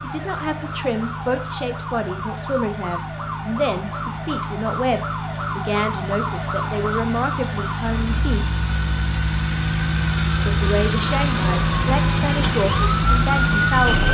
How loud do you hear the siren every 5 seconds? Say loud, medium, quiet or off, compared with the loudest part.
medium, medium, loud.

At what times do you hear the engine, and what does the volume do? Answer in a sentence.
The engine can be heard from 0.0 to 14.0 s, getting louder.